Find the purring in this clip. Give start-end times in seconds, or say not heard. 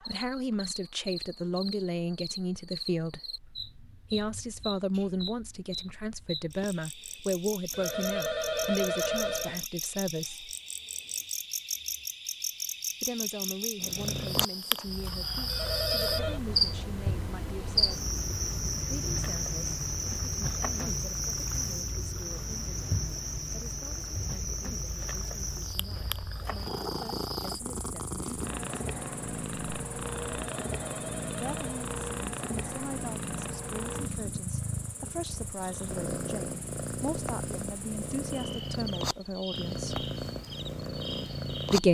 13.8-41.8.